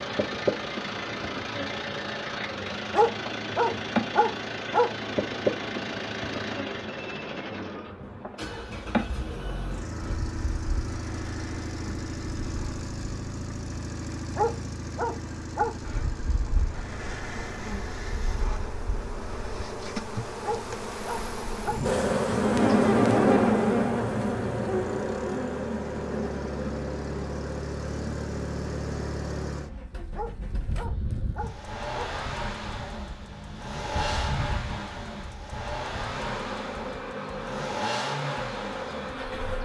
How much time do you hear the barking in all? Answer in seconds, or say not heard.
7 s.